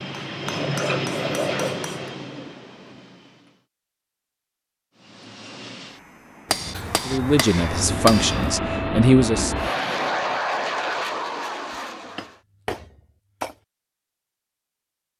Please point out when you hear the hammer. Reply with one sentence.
You can hear the hammer from 0.1 to 2.1 s, from 6.5 to 8.6 s and from 12.2 to 13.6 s.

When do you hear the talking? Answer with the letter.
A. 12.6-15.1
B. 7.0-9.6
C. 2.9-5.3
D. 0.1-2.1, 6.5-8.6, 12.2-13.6
B.